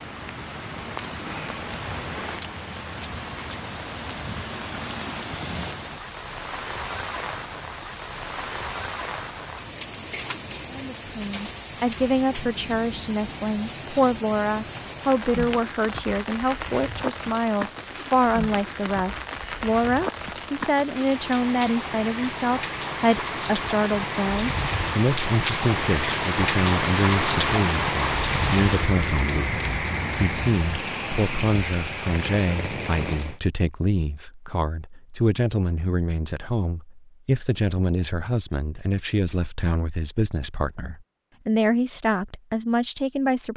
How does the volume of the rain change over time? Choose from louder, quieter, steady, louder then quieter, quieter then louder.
louder.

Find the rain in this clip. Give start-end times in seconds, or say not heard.
0.0-33.4.